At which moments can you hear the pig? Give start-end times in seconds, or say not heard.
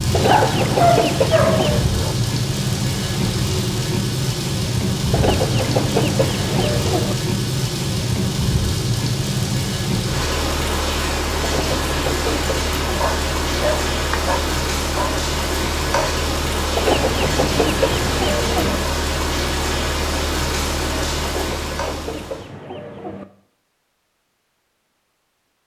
not heard.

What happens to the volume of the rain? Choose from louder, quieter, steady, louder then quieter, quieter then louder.
steady.